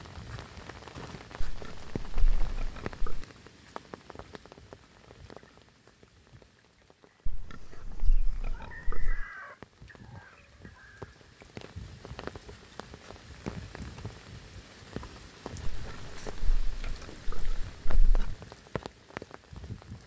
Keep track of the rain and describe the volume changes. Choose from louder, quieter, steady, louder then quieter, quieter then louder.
quieter then louder.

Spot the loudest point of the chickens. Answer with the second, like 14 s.
9 s.